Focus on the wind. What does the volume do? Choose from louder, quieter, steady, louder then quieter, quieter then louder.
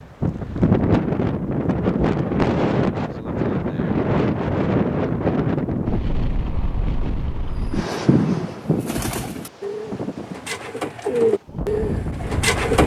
quieter.